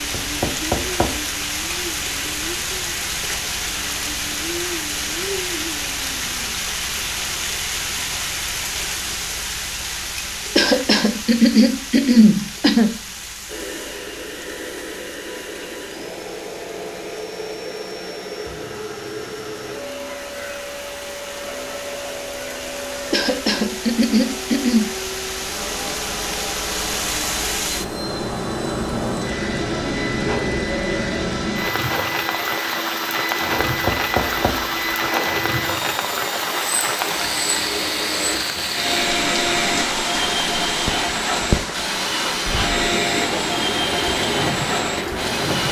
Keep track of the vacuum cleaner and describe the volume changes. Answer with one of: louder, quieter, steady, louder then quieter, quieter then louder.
louder.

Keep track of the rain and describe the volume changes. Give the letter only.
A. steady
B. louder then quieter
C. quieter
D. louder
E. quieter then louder
E.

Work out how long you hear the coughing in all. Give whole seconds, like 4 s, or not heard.
4 s.